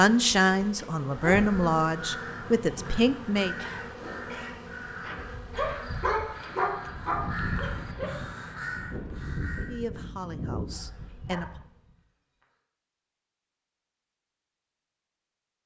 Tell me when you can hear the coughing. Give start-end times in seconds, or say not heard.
3.5-4.5.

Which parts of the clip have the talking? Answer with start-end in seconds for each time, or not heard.
0.0-3.5, 9.6-11.4.